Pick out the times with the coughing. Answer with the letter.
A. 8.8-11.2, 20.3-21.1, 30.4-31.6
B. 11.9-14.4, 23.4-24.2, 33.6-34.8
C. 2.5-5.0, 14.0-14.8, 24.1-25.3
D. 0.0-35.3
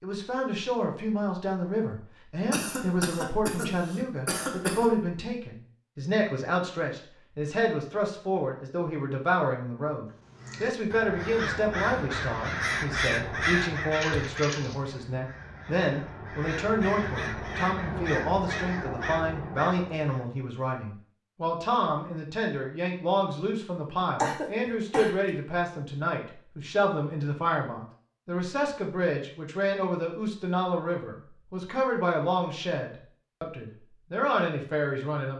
C.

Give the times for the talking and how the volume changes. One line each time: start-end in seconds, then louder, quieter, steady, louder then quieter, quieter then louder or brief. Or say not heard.
0.0-35.3 steady.